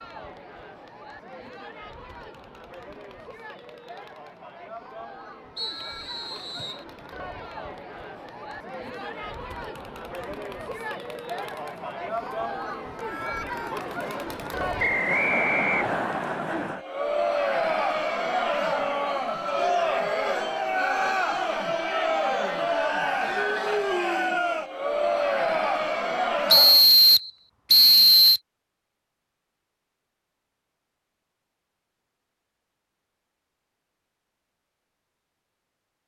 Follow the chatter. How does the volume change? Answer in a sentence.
The volume of the chatter goes up.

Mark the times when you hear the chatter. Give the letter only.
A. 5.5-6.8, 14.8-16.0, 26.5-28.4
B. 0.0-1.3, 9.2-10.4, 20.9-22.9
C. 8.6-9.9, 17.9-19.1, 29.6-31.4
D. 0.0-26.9
D.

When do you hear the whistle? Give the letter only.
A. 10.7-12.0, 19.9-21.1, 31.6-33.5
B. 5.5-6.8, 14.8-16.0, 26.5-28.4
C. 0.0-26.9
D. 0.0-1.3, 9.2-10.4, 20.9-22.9
B.